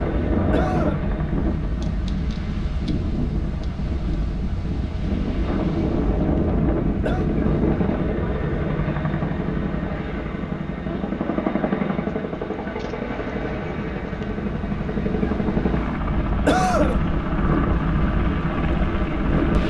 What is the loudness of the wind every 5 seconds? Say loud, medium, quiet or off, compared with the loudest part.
loud, loud, medium, loud.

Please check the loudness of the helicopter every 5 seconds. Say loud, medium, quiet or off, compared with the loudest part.
medium, loud, loud, loud.